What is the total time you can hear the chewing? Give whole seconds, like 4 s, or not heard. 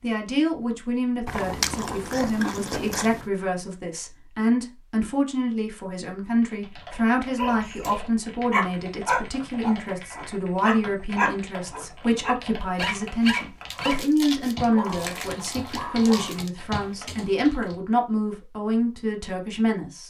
5 s.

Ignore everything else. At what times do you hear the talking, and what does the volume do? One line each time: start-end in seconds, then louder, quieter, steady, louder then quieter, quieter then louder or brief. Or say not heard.
0.0-20.0 steady.